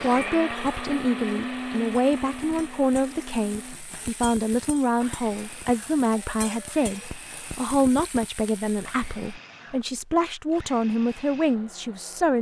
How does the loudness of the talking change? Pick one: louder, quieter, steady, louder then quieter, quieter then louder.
steady.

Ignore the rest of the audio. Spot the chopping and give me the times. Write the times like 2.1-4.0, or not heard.
not heard.